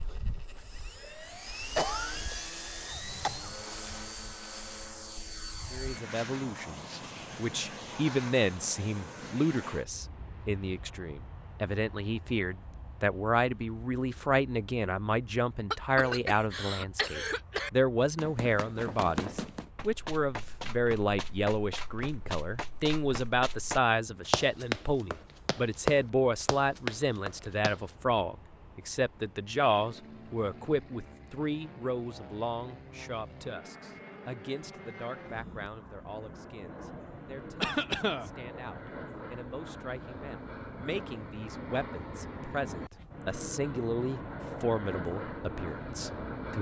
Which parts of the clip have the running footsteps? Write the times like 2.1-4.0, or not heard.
18.1-27.9.